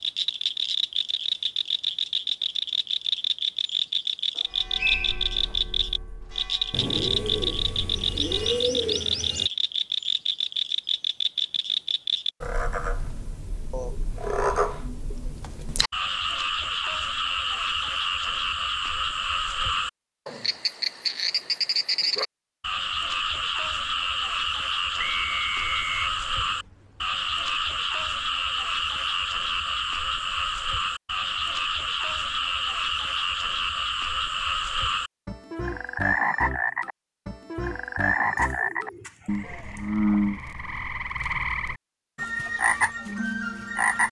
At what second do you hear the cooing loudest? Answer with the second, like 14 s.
9 s.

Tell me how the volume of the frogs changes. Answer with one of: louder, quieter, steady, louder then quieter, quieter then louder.
steady.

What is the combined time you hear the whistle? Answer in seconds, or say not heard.
2 s.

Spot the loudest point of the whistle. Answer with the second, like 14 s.
5 s.